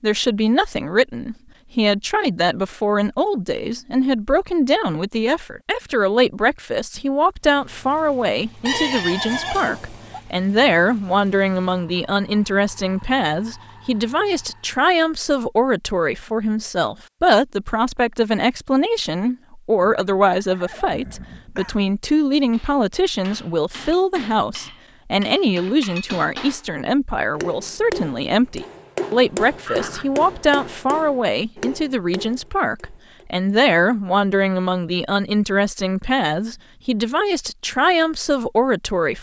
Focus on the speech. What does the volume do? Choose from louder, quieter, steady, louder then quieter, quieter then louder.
steady.